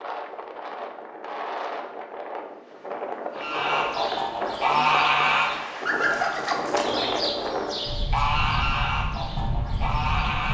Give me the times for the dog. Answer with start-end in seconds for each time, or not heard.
not heard.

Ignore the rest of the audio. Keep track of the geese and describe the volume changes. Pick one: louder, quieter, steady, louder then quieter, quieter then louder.
quieter.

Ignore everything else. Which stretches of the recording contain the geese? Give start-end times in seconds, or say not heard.
3.4-10.4.